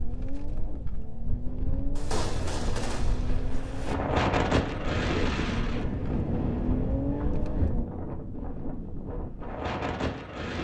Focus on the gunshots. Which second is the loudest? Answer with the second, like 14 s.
2 s.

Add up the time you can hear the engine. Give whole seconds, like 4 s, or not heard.
8 s.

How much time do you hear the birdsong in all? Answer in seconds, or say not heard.
not heard.